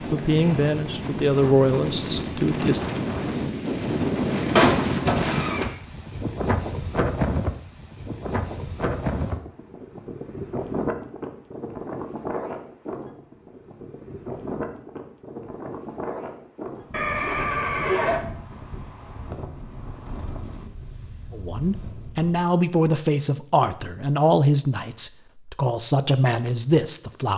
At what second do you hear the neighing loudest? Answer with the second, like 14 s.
5 s.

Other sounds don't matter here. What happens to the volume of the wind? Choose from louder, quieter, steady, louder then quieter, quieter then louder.
quieter.